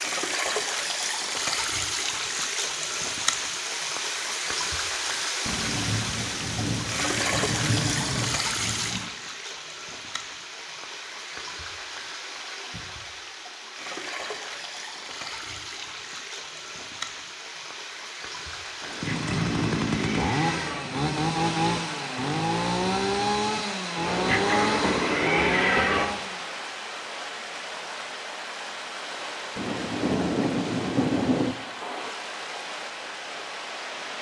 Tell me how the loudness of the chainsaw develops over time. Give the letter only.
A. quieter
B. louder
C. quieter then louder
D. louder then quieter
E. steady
E.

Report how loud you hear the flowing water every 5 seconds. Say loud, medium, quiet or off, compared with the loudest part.
loud, loud, medium, medium, medium, medium, medium.